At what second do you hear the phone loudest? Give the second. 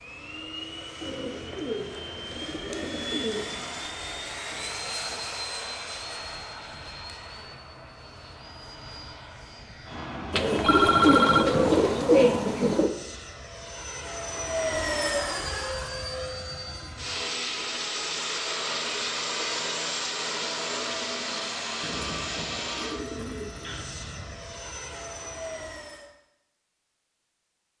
11 s.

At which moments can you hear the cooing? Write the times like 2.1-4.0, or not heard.
1.0-3.7, 10.3-12.9, 21.8-23.9.